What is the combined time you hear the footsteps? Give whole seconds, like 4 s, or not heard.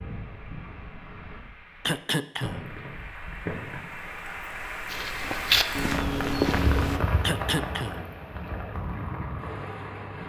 2 s.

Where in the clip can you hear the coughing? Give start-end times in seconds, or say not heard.
1.9-2.8, 7.2-8.2.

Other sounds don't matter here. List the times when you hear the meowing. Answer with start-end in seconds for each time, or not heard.
not heard.